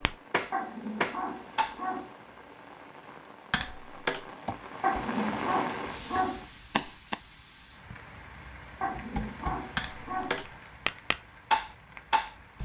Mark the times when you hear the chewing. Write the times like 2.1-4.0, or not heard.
not heard.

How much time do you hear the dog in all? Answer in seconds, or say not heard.
5 s.